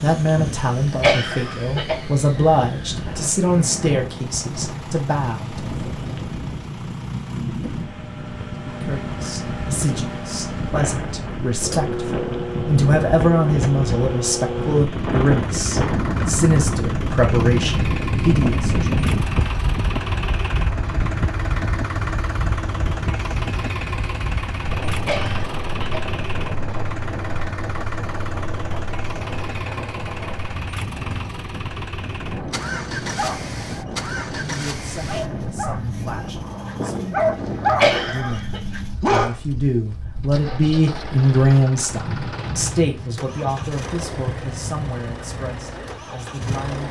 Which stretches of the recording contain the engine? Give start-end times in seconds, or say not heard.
0.0-46.8.